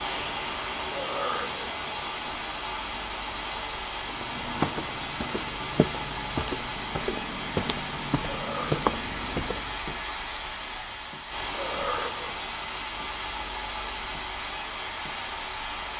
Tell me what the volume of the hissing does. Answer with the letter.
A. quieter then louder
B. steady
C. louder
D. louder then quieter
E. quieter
B.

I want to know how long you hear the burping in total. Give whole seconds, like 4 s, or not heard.
2 s.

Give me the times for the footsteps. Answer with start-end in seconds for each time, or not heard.
4.0-9.8.